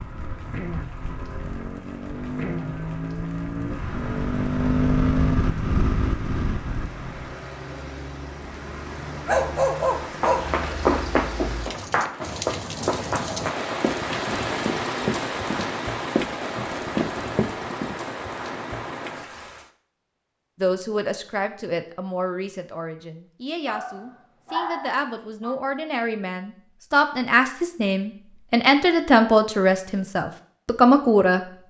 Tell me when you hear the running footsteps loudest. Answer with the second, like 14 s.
11 s.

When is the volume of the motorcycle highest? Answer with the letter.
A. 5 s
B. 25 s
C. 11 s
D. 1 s
A.